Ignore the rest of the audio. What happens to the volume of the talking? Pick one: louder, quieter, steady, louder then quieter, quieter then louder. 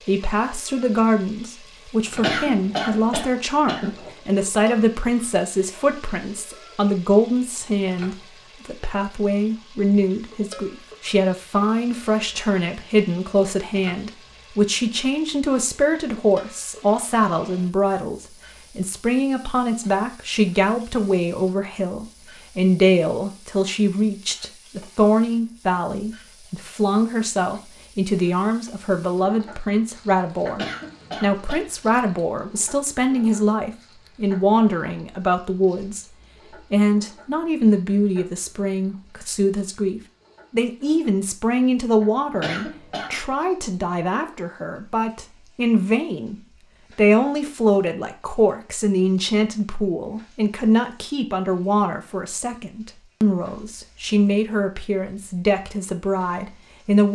steady.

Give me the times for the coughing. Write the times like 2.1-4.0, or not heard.
2.1-4.1, 30.5-31.6, 42.3-43.4.